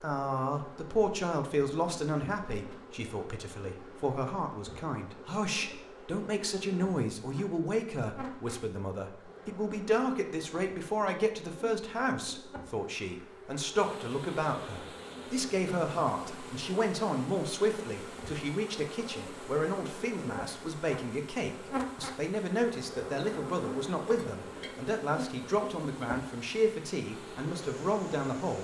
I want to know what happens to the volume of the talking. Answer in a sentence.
The loudness of the talking stays about the same.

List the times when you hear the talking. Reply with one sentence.
You can hear the talking from 0.0 to 28.5 s.